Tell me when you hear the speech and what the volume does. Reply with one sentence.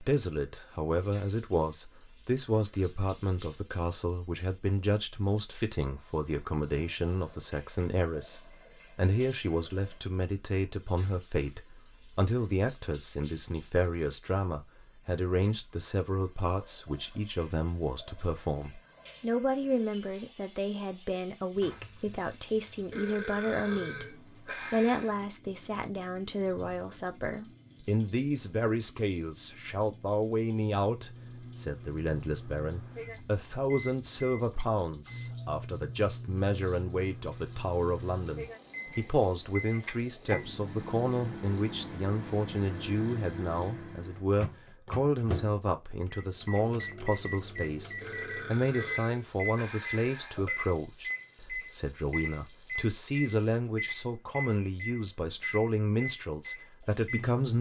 The speech can be heard from 0.0 to 57.5 s, at a steady volume.